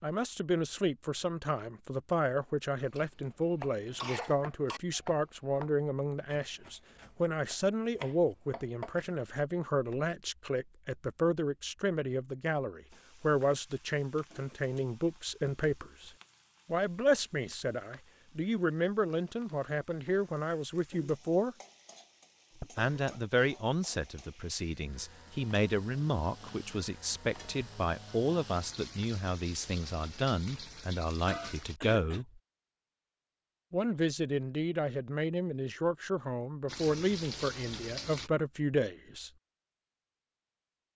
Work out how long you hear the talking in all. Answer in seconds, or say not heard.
37 s.